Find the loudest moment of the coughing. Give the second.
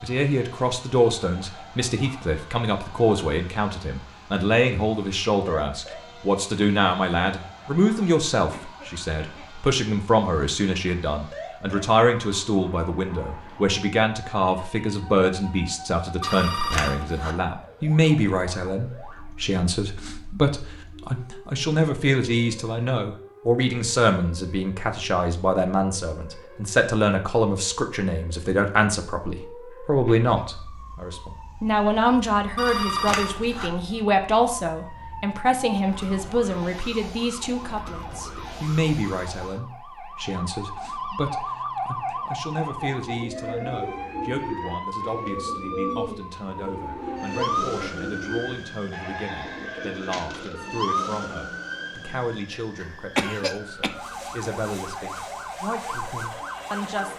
53 s.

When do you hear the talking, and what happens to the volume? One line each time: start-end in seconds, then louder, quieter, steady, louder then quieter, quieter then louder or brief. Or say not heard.
0.0-57.1 quieter.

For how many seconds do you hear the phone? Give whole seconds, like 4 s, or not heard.
2 s.